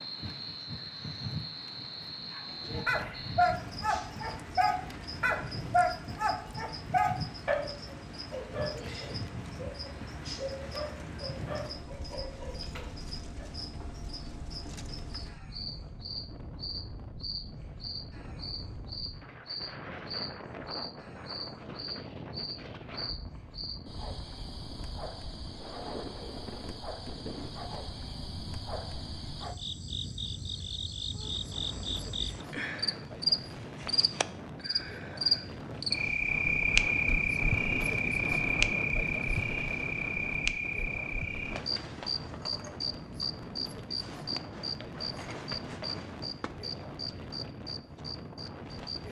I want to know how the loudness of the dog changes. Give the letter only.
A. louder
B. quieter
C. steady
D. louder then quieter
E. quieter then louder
B.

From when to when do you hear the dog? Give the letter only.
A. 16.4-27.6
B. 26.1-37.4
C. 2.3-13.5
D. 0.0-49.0
C.